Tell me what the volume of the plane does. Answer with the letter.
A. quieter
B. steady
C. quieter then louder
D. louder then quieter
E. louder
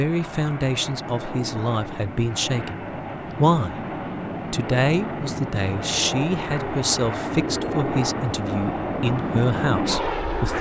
E.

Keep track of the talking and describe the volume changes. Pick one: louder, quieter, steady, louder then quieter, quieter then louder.
steady.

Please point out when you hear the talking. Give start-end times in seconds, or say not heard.
0.0-3.9, 4.5-10.5.